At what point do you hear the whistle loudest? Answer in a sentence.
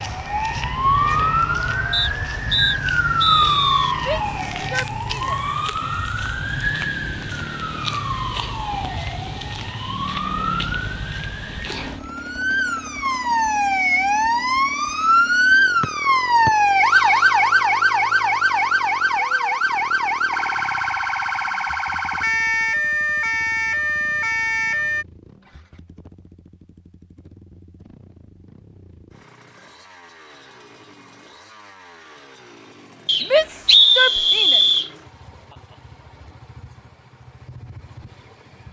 The volume of the whistle peaks at 34 seconds.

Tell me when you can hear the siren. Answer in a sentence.
You can hear the siren from 0.0 to 25.1 s.